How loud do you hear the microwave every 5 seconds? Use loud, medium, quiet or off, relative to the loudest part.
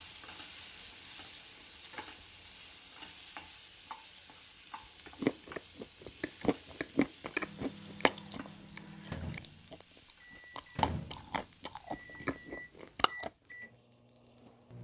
off, loud, loud.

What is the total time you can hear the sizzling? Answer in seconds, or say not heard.
15 s.